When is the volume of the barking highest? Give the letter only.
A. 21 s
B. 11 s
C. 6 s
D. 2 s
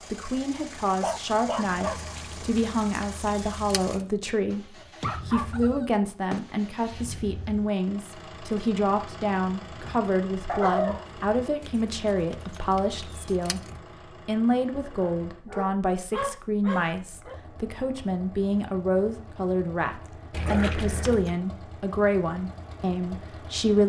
B.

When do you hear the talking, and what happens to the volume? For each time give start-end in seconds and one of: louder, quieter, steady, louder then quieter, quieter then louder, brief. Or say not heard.
0.1-23.8 steady.